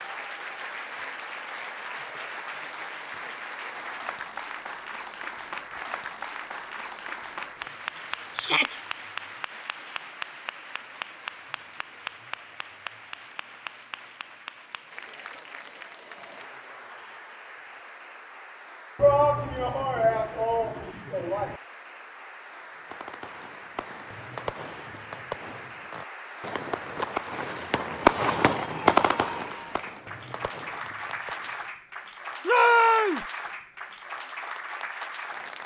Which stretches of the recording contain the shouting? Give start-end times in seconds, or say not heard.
8.3-8.8, 18.9-21.6, 32.5-33.2.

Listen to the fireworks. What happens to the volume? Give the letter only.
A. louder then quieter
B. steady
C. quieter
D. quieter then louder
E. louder
A.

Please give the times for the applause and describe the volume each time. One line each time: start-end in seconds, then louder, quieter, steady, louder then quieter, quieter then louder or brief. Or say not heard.
0.0-35.6 quieter then louder.